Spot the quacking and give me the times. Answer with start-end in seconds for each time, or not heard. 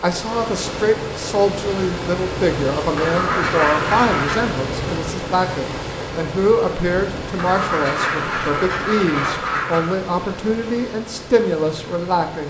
3.0-4.5, 7.3-9.8.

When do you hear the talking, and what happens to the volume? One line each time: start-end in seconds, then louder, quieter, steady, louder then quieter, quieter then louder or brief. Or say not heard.
0.0-12.4 steady.